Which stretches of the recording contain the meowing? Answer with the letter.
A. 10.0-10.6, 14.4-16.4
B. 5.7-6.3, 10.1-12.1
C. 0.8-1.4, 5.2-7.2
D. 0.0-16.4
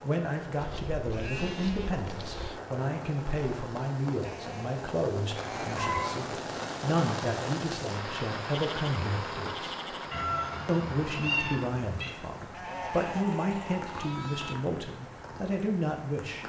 B.